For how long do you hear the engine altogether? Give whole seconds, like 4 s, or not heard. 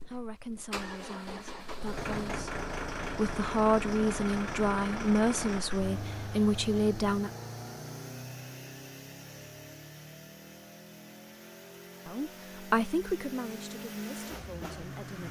15 s.